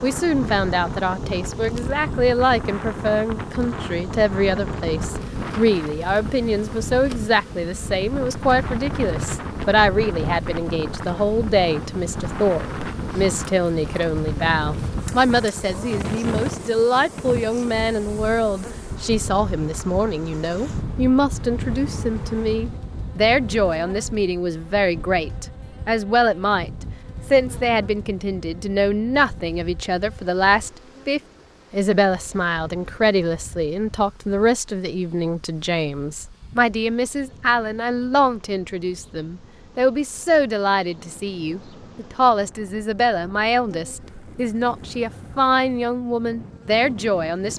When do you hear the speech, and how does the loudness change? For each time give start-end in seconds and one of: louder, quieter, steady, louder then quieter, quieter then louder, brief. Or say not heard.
0.0-47.5 steady.